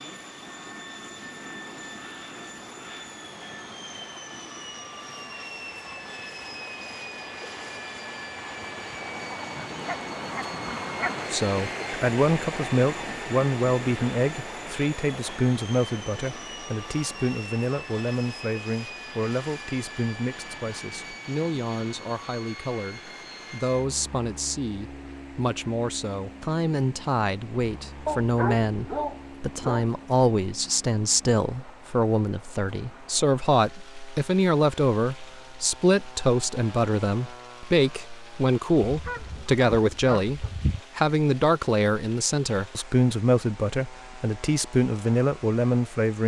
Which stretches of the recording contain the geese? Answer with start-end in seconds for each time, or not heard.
9.3-11.3, 38.8-40.8.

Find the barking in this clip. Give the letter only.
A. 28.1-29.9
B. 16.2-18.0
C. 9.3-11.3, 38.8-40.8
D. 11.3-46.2
A.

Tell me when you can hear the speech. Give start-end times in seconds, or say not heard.
11.3-46.2.